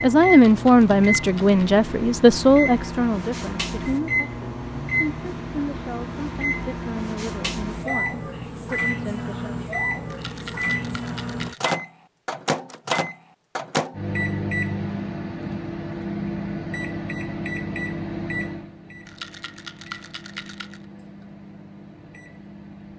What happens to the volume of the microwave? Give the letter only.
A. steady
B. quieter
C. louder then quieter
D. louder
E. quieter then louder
B.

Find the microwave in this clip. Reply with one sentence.
You can hear the microwave from 0.0 to 22.9 s.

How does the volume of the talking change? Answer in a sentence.
The loudness of the talking goes down.